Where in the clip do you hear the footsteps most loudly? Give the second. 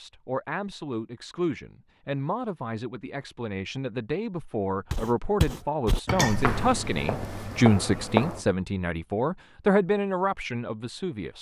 8 s.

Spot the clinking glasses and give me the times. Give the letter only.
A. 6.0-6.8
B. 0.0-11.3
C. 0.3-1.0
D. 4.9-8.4
A.